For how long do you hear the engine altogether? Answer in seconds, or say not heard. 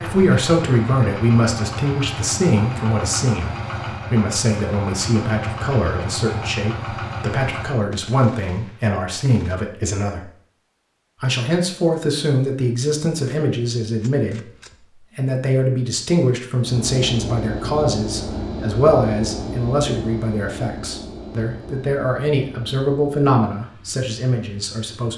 16 s.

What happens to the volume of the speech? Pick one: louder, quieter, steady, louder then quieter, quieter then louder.
steady.